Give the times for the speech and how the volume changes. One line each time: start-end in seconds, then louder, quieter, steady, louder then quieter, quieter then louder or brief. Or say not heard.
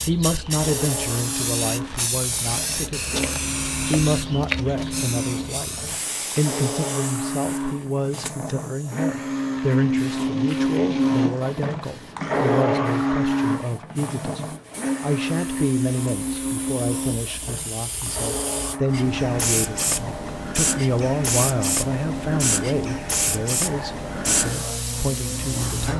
0.0-25.9 steady.